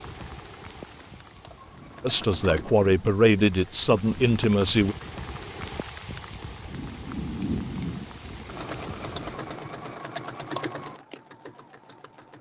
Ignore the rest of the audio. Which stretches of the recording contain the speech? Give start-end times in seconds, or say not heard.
2.0-5.0.